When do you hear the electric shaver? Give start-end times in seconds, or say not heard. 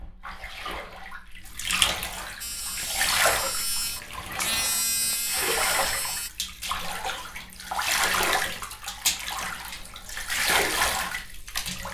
2.4-6.3.